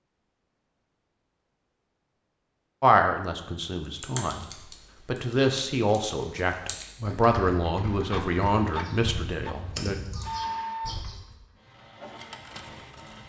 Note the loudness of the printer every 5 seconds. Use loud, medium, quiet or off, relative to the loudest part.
off, loud, loud.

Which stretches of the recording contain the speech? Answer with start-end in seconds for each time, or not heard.
2.8-4.5, 5.0-9.9.